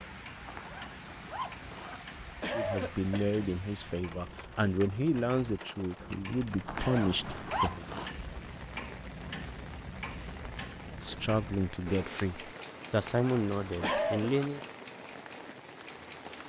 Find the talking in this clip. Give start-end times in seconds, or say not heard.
2.5-7.8, 10.8-14.6.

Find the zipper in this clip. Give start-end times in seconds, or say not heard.
0.5-2.0, 6.7-8.1, 12.9-14.5.